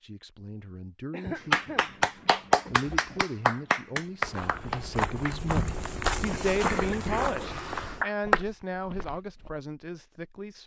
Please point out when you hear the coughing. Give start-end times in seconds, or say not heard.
1.1-1.9, 6.6-8.0.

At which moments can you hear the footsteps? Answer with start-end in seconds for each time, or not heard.
4.2-9.5.